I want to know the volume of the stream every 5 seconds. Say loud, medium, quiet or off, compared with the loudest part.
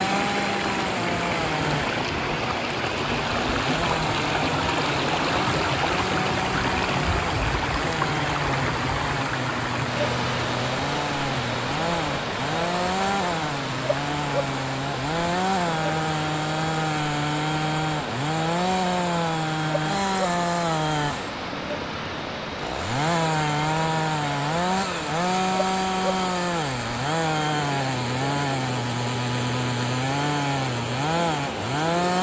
loud, loud, loud, medium, medium, medium, medium.